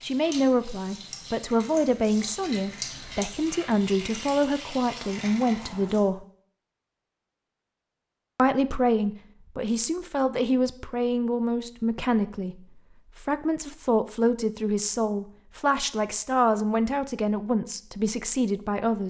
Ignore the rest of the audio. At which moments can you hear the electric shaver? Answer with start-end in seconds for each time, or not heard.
not heard.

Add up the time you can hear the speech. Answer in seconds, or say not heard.
17 s.